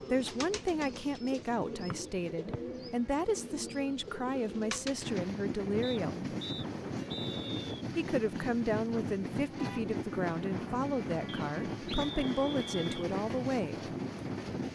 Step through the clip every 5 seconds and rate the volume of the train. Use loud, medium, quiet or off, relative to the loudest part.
quiet, loud, loud.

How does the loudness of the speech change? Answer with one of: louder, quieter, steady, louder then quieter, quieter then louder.
steady.